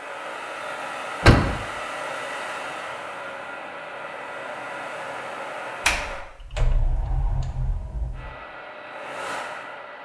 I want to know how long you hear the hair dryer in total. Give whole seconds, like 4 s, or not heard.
8 s.